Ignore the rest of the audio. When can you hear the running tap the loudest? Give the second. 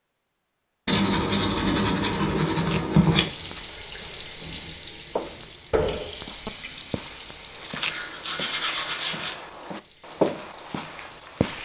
6 s.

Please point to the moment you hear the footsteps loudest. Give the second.
10 s.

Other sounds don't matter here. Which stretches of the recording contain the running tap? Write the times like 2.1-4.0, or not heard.
3.0-11.6.